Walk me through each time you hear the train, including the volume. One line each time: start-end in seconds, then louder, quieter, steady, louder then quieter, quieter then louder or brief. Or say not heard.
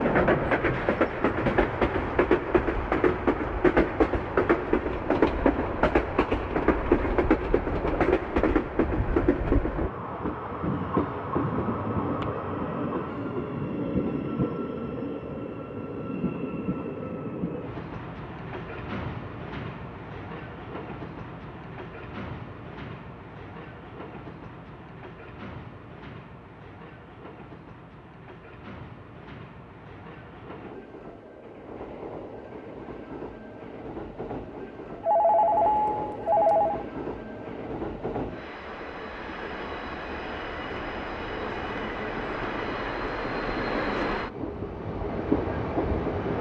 0.0-46.3 quieter then louder.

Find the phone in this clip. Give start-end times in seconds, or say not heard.
35.0-36.9.